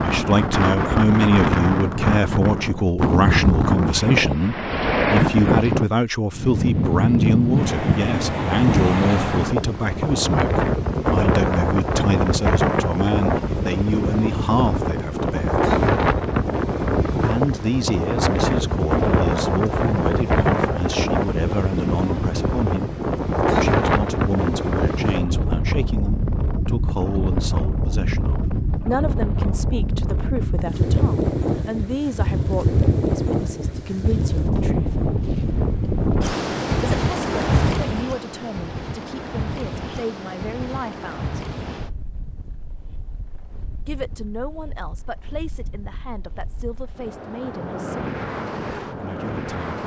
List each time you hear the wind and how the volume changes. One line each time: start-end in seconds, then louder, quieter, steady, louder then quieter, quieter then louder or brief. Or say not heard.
0.0-49.8 quieter.